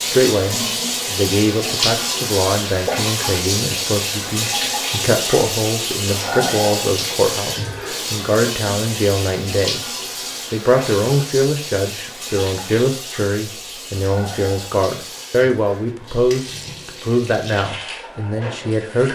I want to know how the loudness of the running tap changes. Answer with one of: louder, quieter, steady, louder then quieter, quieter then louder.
quieter.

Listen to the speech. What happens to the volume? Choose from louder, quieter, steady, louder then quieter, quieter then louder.
steady.